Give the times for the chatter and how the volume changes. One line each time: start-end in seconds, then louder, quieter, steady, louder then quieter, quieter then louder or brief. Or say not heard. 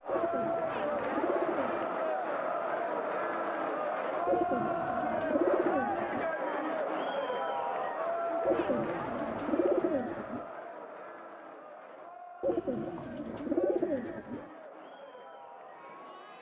0.0-16.3 quieter.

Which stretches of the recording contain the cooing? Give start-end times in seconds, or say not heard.
0.1-1.9, 4.2-6.3, 8.4-10.4, 12.4-14.5.